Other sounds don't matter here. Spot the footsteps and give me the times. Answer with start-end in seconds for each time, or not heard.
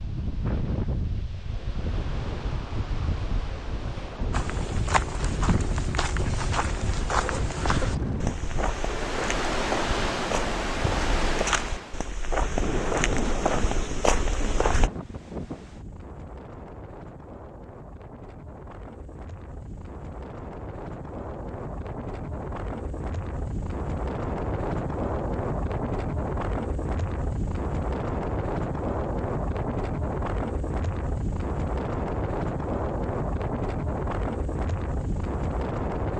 4.3-14.9.